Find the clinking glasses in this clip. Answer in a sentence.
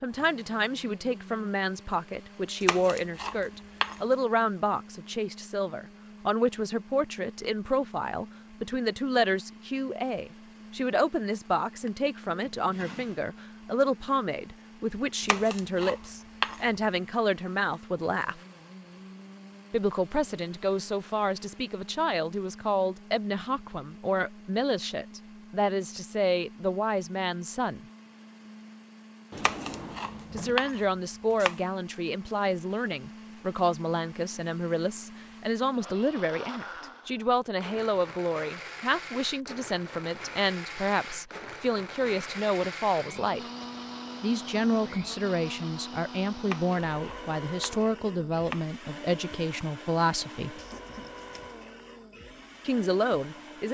The clinking glasses can't be heard in this clip.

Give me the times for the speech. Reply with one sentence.
The speech can be heard from 0.0 to 18.4 s, from 19.7 to 27.8 s, from 30.3 to 43.4 s, from 44.2 to 50.6 s and from 52.6 to 53.6 s.